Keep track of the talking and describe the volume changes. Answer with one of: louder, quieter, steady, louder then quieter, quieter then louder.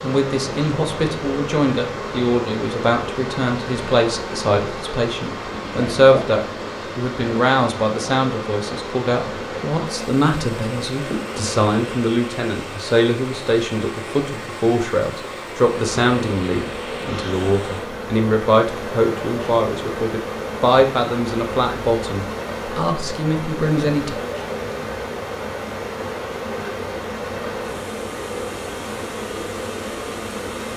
steady.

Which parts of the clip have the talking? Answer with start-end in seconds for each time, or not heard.
0.0-24.1.